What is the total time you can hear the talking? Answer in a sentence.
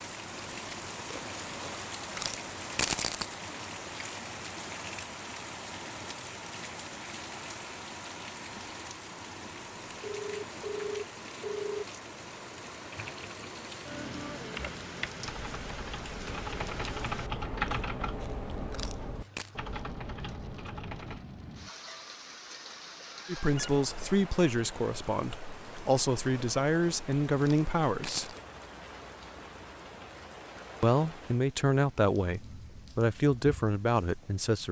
The talking can be heard for 9 seconds in total.